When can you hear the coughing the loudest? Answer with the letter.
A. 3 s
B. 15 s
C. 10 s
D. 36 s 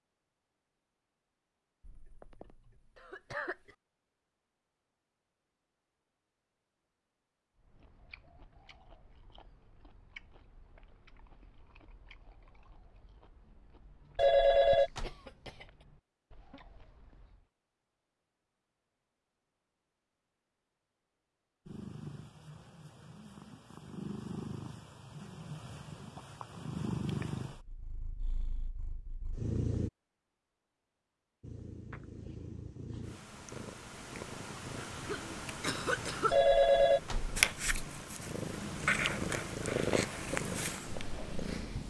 D.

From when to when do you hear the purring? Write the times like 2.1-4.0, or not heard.
21.6-29.9, 31.4-41.8.